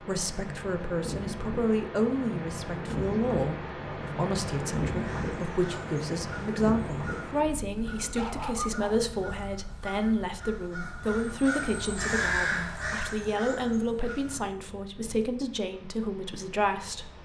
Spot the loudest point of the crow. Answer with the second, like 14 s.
12 s.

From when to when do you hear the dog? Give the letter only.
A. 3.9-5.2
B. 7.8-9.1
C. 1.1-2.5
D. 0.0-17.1
B.